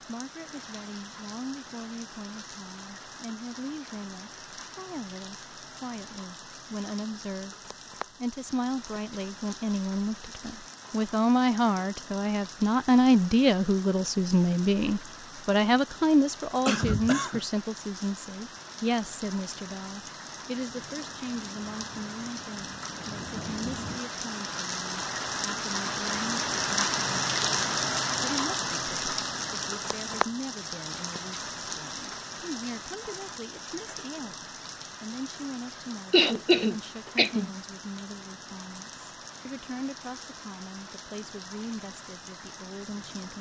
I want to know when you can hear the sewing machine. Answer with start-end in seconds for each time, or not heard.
not heard.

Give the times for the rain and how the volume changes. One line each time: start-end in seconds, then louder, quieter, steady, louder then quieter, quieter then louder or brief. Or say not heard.
0.0-43.3 louder then quieter.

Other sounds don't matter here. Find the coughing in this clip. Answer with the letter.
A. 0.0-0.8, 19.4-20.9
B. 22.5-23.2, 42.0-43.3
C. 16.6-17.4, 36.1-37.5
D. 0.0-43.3
C.